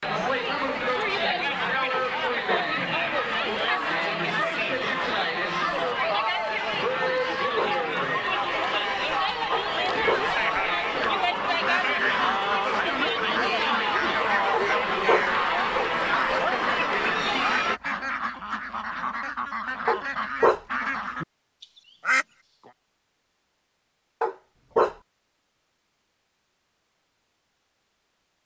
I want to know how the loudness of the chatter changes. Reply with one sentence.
The loudness of the chatter stays about the same.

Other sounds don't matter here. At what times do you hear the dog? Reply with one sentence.
You can hear the dog from 1.9 to 2.6 s, from 7.0 to 7.8 s, from 9.5 to 10.2 s, from 14.5 to 15.2 s, from 19.9 to 20.6 s and from 24.2 to 24.9 s.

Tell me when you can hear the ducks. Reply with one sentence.
The ducks can be heard from 10.9 to 22.7 s.